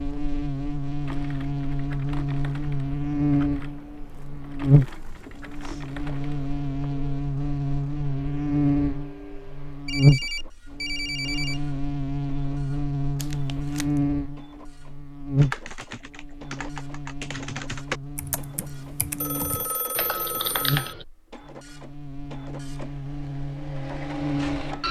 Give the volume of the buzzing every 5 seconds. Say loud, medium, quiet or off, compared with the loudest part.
loud, loud, loud, medium, medium.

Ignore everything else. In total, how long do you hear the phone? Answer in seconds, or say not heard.
5 s.